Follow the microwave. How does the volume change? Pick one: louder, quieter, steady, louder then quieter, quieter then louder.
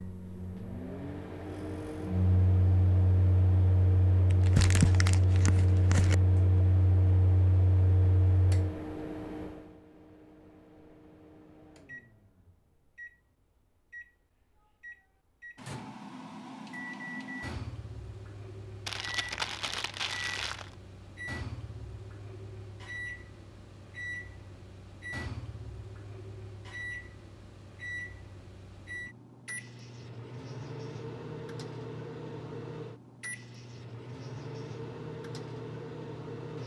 quieter.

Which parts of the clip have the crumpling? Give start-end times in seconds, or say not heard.
4.3-6.2, 18.9-20.8.